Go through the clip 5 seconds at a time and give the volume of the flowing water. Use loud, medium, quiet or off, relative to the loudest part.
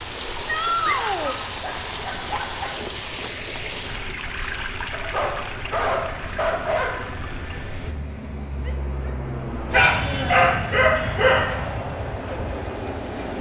loud, medium, medium.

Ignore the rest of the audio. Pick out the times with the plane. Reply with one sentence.
You can hear the plane from 0.0 to 13.3 s.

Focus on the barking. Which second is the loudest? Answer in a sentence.
The volume of the barking peaks at 10 seconds.